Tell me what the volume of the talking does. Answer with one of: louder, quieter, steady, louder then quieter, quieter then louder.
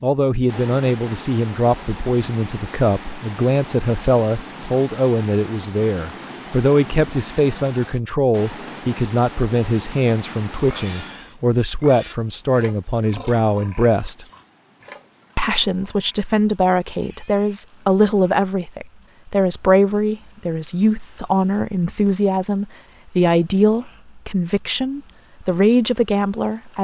steady.